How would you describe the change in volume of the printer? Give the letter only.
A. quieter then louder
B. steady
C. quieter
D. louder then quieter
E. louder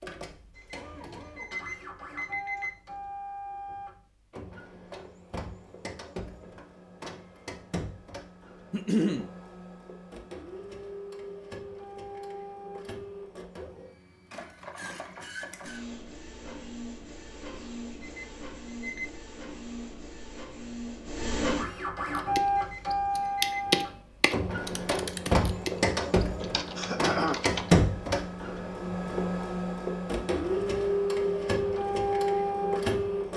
E.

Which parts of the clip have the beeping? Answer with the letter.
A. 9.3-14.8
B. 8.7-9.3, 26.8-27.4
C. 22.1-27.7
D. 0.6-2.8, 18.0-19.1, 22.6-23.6
D.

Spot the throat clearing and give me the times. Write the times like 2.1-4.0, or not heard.
8.7-9.3, 26.8-27.4.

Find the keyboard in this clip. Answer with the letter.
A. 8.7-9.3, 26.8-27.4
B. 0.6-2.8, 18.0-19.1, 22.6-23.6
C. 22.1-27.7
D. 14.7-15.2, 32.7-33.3
C.